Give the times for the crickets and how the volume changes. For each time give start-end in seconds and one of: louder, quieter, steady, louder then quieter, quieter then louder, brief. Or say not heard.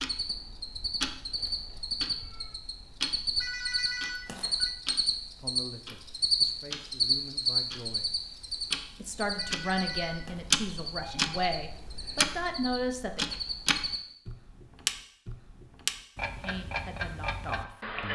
0.0-14.0 louder then quieter.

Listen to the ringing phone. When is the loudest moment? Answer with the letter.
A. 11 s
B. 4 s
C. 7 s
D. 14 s
B.